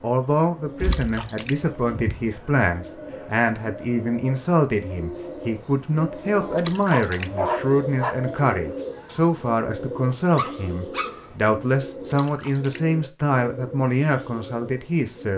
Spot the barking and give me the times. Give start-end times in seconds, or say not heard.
0.8-2.3, 6.3-8.3, 10.3-11.3.